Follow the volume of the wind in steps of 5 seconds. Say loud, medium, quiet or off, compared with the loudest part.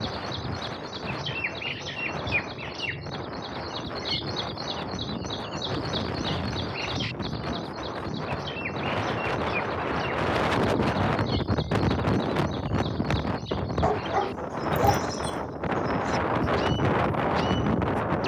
medium, medium, loud, loud.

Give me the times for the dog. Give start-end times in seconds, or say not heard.
13.8-15.3.